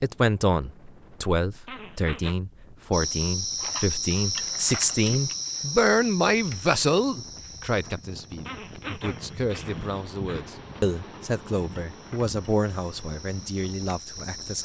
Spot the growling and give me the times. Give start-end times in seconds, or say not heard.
1.6-2.4, 8.4-10.4.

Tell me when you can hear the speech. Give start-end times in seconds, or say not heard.
0.0-14.5.